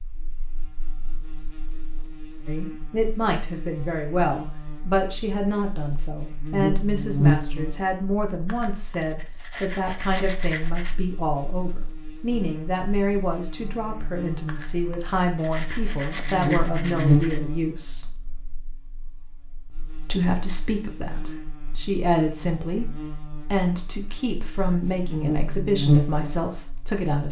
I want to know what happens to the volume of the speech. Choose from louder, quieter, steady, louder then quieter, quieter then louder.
steady.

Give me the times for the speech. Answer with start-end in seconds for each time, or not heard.
2.5-18.1, 20.1-27.2.